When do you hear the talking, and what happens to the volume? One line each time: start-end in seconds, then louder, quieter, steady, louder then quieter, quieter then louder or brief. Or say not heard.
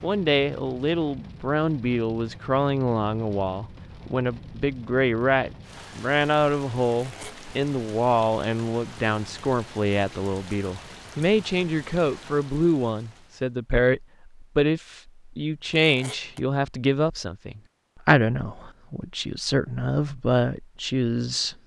0.0-21.6 steady.